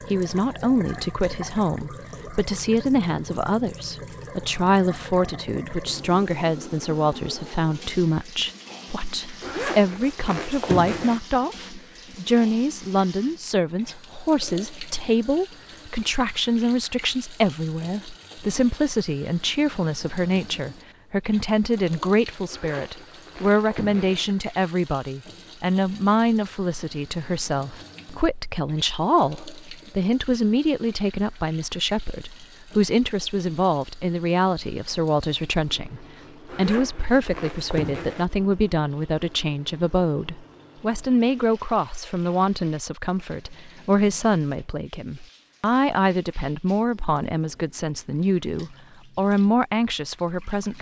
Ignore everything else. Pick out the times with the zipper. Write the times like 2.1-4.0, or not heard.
9.4-11.2, 22.4-24.3, 36.5-38.2.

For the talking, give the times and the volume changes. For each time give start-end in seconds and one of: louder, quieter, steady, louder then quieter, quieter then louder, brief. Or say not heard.
0.1-50.7 steady.